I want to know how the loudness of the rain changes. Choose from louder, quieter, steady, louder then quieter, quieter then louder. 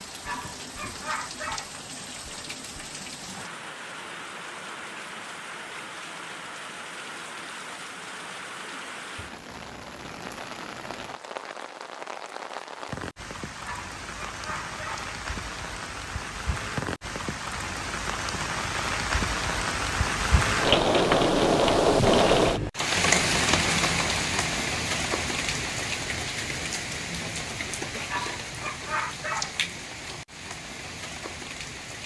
louder then quieter.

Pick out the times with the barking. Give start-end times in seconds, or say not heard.
0.2-1.7, 13.7-15.1, 28.1-29.6.